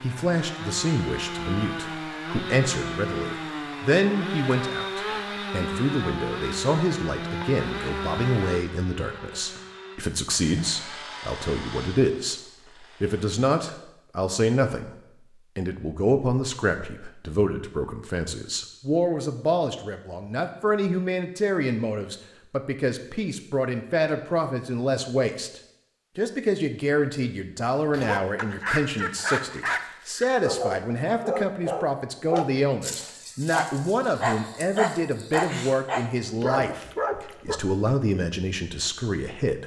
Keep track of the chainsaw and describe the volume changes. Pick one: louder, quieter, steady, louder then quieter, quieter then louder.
quieter.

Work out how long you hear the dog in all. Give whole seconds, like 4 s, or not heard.
10 s.